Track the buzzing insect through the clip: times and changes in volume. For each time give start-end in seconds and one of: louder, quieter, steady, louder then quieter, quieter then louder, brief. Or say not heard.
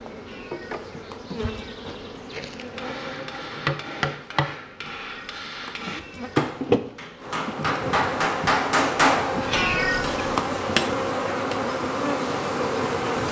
0.0-13.2 louder.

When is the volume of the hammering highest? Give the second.
9 s.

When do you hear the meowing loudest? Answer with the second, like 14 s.
10 s.